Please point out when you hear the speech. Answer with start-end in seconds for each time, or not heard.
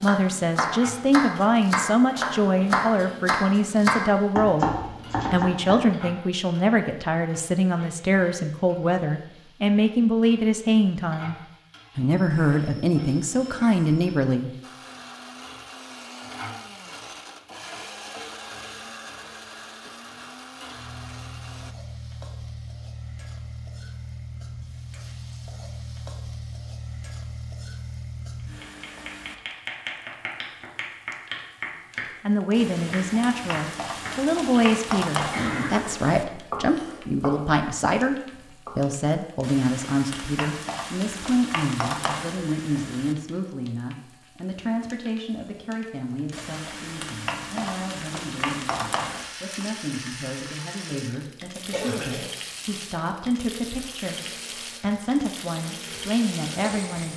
0.0-4.7, 5.3-11.3, 11.9-14.5, 32.2-57.1.